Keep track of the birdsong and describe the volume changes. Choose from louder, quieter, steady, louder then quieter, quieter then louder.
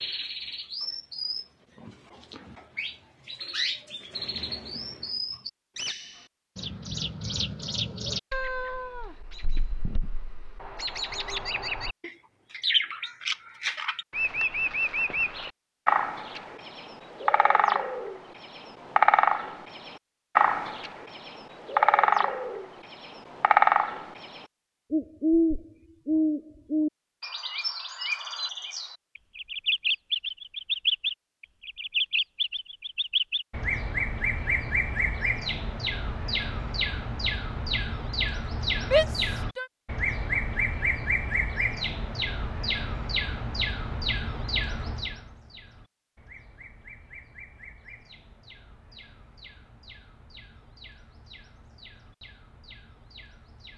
louder then quieter.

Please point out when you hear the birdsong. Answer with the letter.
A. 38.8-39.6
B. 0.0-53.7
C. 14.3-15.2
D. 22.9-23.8
B.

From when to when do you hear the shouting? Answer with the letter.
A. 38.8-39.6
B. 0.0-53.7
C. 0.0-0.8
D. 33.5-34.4
A.